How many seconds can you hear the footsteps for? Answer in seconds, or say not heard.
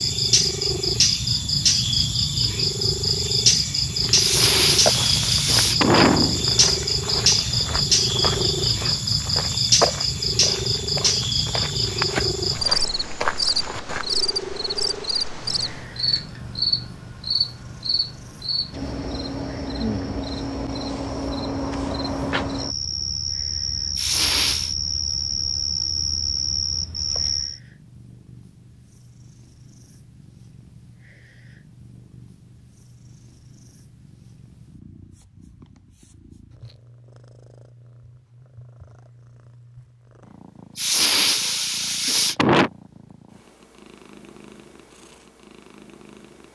10 s.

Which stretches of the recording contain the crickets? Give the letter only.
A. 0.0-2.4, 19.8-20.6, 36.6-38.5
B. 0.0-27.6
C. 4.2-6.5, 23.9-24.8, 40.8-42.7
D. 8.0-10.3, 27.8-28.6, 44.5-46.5
B.